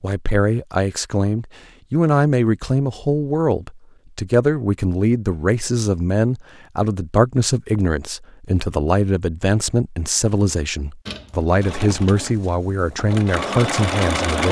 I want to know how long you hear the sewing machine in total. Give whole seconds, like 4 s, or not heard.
3 s.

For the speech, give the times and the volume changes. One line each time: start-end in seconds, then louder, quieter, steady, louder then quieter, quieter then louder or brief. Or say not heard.
0.0-14.4 steady.